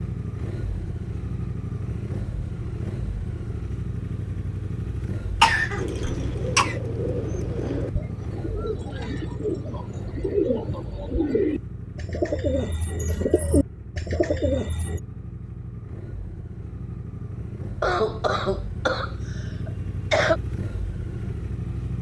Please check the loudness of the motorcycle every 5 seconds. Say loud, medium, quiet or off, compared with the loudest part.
loud, loud, medium, loud, loud.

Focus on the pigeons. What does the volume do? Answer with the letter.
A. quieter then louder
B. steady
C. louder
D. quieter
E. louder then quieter
C.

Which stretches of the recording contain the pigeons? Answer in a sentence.
You can hear the pigeons from 5.8 to 15.0 s.